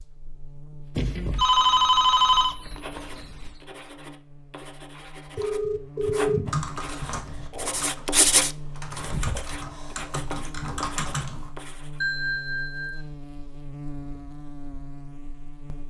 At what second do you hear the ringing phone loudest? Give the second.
2 s.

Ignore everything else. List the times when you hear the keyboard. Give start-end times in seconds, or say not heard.
6.5-11.5.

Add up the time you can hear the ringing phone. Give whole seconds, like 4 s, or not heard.
5 s.